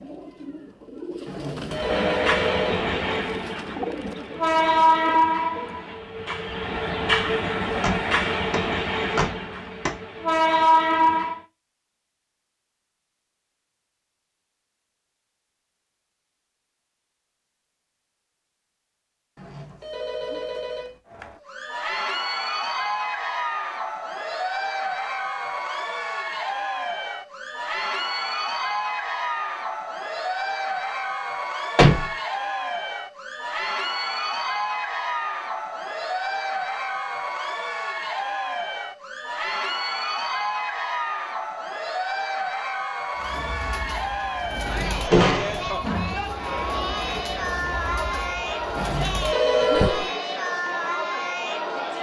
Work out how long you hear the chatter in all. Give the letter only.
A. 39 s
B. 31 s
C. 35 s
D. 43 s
B.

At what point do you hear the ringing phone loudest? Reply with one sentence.
The volume of the ringing phone peaks at 50 seconds.